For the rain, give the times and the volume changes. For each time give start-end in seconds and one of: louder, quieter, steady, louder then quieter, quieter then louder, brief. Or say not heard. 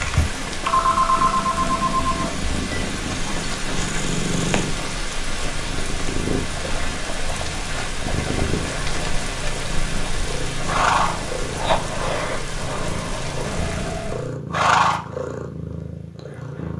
0.0-14.3 steady.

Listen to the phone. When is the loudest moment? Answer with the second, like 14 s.
1 s.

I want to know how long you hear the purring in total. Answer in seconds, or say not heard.
17 s.